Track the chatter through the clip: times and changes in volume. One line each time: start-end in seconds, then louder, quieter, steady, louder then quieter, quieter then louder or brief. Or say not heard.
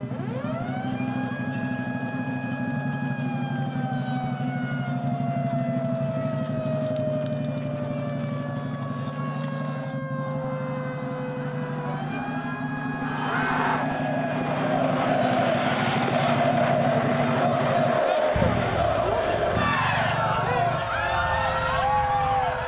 0.1-22.6 louder.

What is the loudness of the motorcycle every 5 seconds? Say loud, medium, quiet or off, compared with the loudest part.
loud, loud, loud, loud, medium.